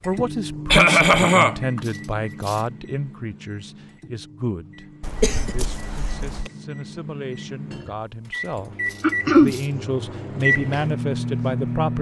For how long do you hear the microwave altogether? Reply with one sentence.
The microwave can be heard for 12 seconds in total.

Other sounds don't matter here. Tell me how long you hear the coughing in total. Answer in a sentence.
The coughing can be heard for 3 seconds in total.